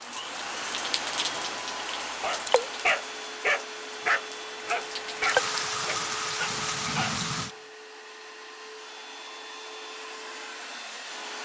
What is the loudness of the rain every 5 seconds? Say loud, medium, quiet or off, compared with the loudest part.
medium, loud, off.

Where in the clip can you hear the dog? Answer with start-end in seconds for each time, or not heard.
2.2-7.6.